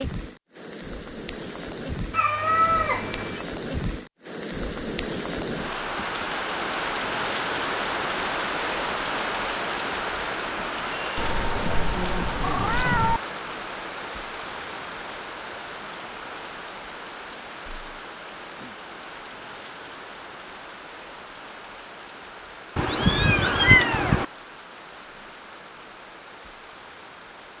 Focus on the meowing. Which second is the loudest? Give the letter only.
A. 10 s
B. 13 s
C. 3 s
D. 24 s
D.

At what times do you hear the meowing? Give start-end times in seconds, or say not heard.
2.1-3.5, 11.2-13.2, 22.8-24.2.